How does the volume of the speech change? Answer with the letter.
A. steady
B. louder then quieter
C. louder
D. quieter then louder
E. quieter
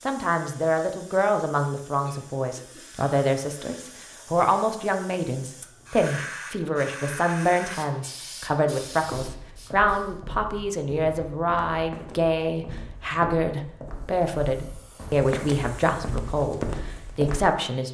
A.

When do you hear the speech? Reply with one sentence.
You can hear the speech from 0.1 to 17.8 s.